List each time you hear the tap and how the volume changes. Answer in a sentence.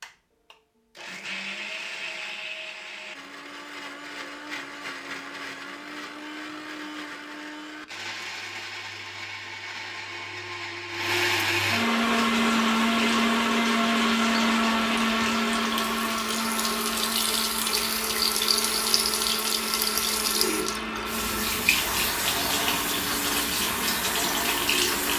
You can hear the tap from 11.9 to 25.1 s, getting louder.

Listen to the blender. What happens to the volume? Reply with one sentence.
The volume of the blender goes up, then down.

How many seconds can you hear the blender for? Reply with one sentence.
The blender can be heard for 25 seconds in total.